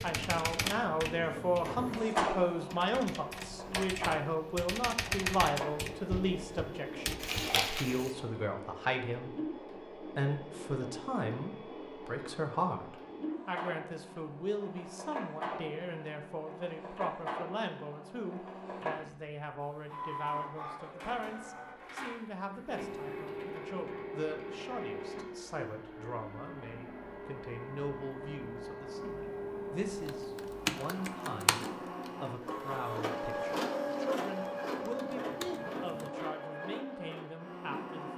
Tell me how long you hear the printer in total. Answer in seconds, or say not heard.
38 s.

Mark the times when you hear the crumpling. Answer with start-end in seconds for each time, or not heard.
7.2-8.1.